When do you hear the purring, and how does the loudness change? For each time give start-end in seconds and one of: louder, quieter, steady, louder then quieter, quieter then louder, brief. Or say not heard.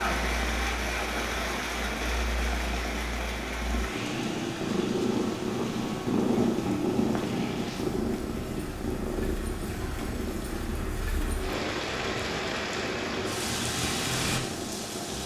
0.0-15.2 louder then quieter.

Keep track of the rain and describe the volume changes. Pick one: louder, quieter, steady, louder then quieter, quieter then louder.
quieter then louder.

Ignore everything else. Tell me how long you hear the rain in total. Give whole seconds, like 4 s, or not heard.
15 s.